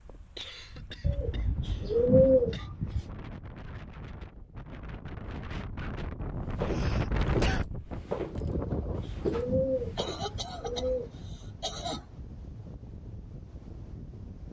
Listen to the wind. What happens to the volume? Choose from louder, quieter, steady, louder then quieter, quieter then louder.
louder then quieter.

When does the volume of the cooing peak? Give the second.
2 s.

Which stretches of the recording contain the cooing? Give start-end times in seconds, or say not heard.
1.0-3.1, 8.4-11.1.